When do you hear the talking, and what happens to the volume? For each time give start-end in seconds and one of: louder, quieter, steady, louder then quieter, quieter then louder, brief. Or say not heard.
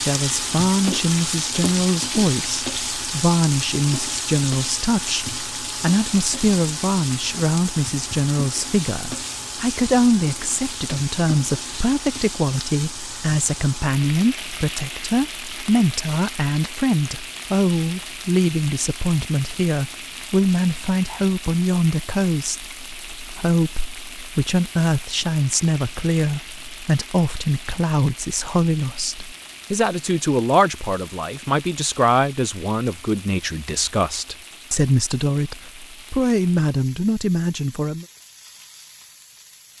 0.1-38.0 steady.